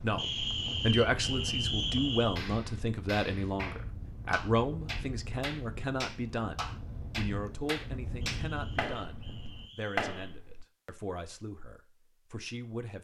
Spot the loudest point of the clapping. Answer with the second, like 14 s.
10 s.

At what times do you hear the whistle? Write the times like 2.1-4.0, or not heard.
0.1-2.4, 8.3-10.3.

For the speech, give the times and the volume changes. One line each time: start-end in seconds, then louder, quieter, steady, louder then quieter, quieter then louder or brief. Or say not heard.
0.0-12.9 quieter.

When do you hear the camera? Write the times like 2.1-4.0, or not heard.
not heard.